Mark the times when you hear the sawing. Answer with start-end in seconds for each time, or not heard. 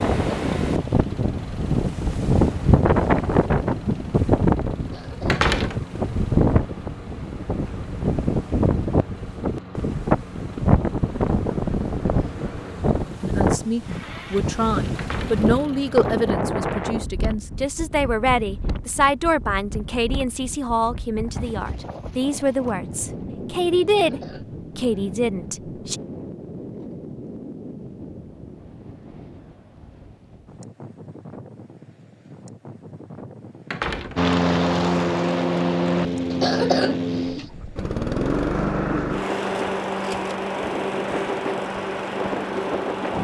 not heard.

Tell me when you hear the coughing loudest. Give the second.
37 s.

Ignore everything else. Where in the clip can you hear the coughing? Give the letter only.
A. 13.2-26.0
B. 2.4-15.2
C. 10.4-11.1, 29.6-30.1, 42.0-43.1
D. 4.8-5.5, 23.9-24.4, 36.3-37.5
D.